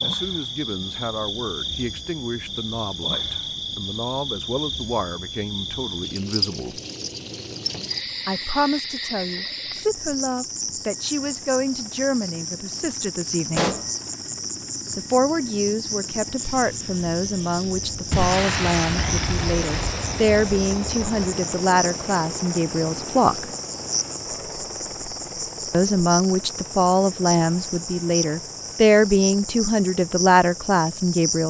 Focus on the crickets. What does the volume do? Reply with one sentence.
The loudness of the crickets stays about the same.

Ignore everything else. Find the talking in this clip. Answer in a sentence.
The talking can be heard from 0.0 to 6.8 s, from 8.2 to 13.7 s, from 14.9 to 23.5 s and from 25.7 to 31.4 s.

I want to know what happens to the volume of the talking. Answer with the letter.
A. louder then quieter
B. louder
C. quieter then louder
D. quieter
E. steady
B.